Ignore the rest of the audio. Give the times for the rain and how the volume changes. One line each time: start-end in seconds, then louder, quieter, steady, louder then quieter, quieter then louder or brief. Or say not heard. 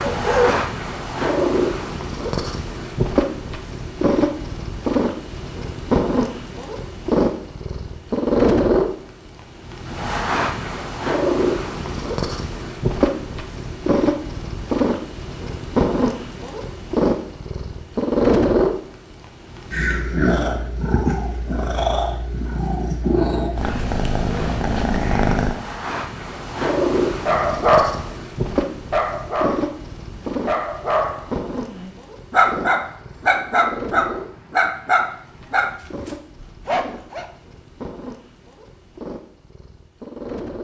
not heard.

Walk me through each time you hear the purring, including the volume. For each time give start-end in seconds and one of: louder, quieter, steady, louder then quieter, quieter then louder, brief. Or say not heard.
0.0-40.6 quieter.